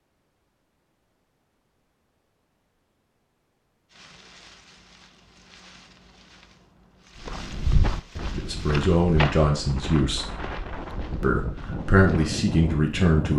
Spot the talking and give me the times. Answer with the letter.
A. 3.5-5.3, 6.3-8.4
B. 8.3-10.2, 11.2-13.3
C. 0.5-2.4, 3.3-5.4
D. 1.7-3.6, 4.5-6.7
B.